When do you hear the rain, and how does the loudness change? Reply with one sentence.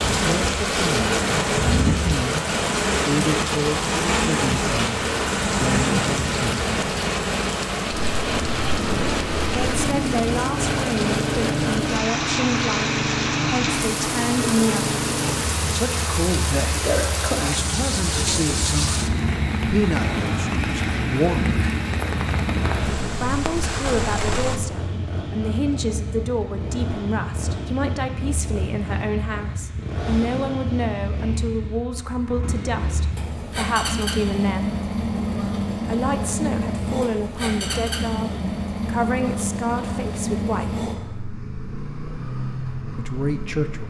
The rain can be heard from 0.0 to 24.6 s, at a steady volume.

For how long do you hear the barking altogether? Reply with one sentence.
The barking can't be heard in this clip.